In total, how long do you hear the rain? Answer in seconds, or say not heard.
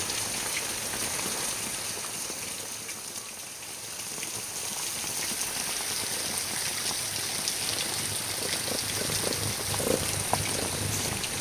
11 s.